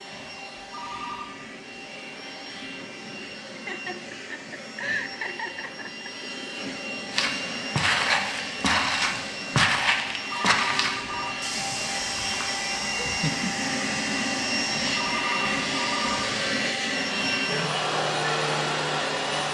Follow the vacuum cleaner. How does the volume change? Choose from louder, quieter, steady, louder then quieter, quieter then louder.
louder.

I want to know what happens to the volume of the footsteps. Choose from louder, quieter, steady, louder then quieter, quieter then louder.
quieter.